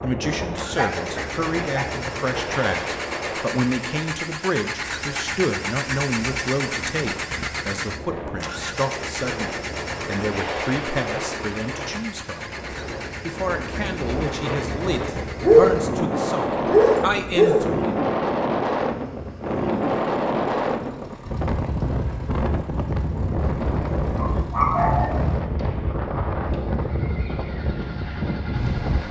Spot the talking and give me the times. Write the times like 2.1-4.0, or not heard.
0.0-12.5, 13.2-17.9.